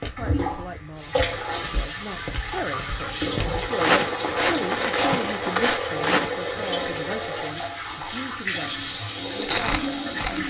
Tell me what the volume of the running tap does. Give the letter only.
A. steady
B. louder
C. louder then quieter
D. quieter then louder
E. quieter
A.